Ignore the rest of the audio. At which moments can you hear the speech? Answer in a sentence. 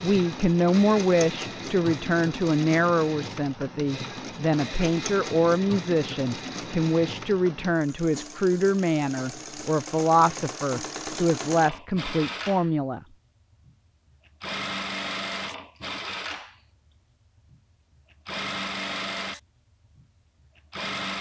The speech can be heard from 0.0 to 13.0 s.